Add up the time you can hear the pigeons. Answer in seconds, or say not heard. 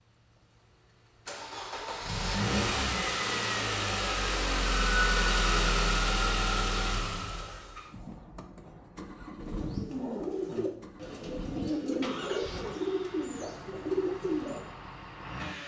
5 s.